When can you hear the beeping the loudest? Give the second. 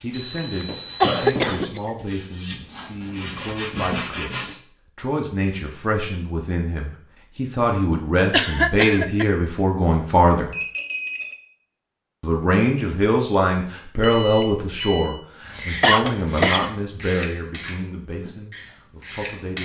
1 s.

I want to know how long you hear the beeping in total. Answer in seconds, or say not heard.
4 s.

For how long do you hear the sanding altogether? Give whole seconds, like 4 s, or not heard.
9 s.